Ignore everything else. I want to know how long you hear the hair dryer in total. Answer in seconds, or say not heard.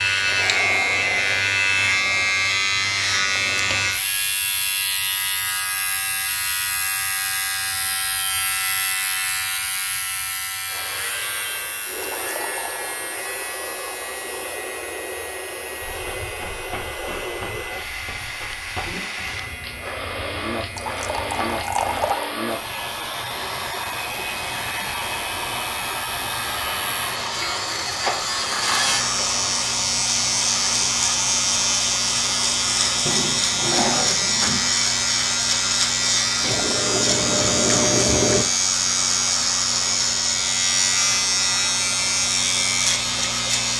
33 s.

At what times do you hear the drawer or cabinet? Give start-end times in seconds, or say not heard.
33.0-34.7.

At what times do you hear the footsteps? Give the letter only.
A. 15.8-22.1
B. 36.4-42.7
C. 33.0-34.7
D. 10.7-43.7
A.